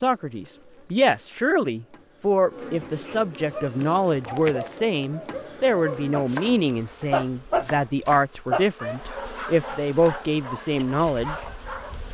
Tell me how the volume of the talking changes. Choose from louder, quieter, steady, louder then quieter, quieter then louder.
steady.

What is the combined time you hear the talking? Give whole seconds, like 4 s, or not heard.
11 s.